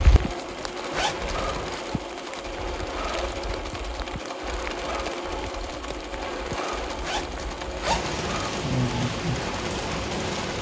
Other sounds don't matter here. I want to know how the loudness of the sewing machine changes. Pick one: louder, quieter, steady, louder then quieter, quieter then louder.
steady.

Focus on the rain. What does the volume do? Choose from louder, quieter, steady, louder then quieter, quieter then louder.
louder.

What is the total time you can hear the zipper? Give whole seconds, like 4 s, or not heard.
2 s.